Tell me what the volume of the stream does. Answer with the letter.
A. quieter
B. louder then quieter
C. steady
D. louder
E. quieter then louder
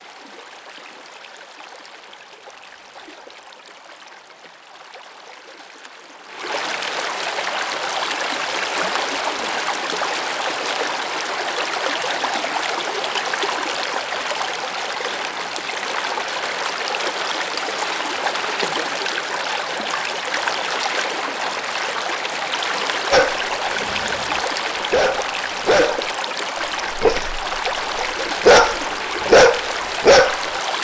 D.